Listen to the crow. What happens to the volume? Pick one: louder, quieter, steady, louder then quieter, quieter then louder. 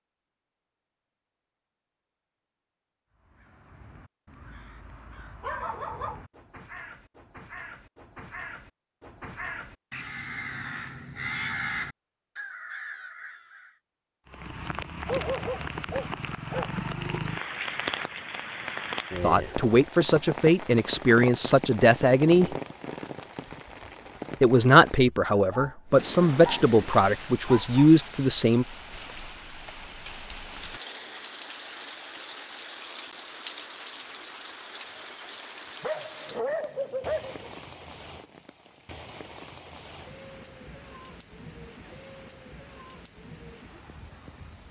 louder.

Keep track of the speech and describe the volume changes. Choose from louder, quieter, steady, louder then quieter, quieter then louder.
steady.